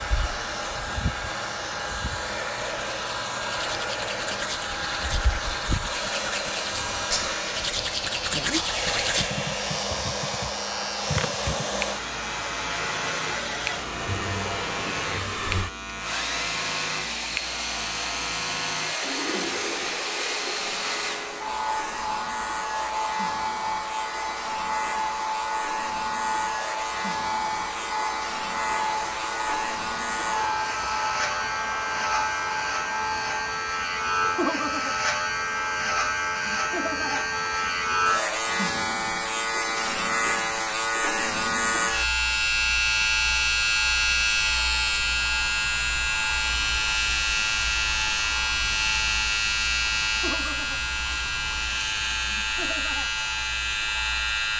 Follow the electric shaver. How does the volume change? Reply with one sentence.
The loudness of the electric shaver goes up.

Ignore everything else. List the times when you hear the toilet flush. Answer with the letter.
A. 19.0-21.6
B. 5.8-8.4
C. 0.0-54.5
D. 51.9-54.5
A.